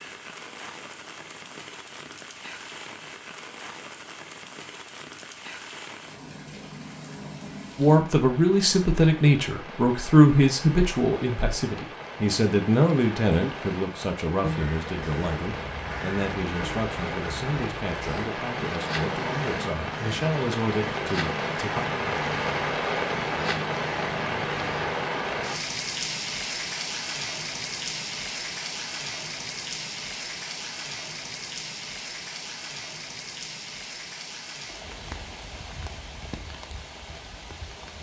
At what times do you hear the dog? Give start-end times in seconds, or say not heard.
not heard.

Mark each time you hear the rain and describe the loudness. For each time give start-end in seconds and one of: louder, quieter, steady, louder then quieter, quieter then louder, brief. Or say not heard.
0.0-37.9 louder then quieter.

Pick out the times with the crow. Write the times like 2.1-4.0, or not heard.
14.4-24.9.